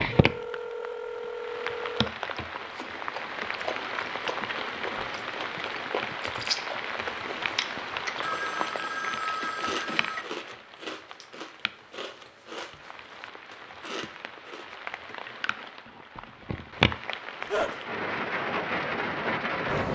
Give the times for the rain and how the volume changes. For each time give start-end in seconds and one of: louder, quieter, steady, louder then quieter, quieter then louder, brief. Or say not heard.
0.0-19.9 quieter then louder.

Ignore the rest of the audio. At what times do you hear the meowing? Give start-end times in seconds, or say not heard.
not heard.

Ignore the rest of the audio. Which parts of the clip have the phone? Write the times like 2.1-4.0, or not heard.
0.1-2.1, 8.2-10.2, 17.4-17.8.